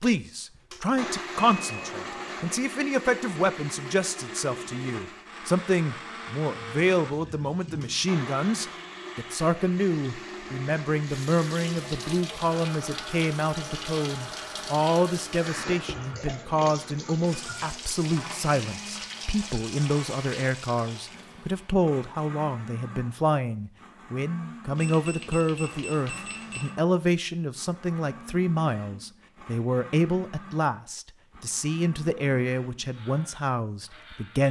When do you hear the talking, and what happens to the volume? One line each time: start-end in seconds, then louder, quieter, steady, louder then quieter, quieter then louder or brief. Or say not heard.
0.0-34.4 steady.